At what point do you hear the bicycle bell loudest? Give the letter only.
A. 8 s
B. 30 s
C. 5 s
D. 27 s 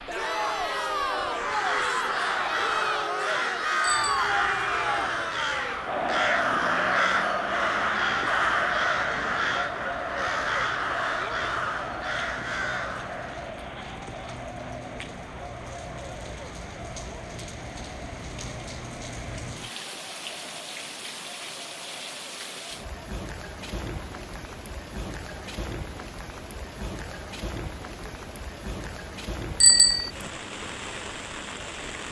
B.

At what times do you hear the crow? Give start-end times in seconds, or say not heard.
1.4-13.5.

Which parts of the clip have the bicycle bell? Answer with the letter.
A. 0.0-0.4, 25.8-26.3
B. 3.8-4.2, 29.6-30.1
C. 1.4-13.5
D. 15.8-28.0
B.